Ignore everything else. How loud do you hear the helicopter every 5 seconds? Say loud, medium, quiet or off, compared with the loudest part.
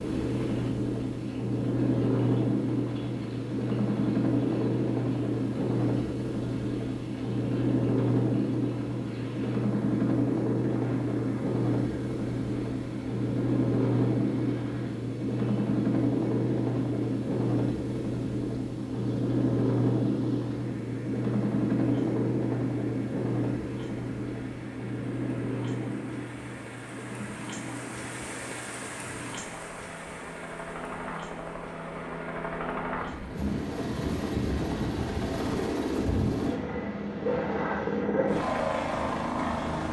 loud, loud, loud, loud, loud, medium, medium, loud.